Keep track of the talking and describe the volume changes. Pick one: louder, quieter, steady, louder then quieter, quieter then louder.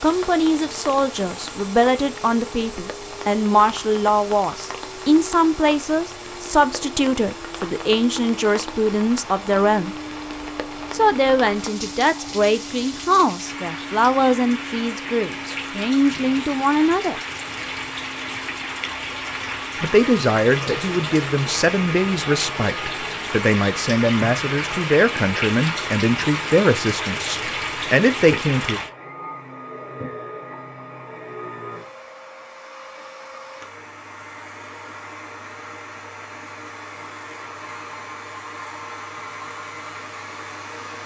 steady.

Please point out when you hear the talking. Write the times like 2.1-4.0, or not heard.
0.0-9.9, 10.9-17.1, 19.8-28.8.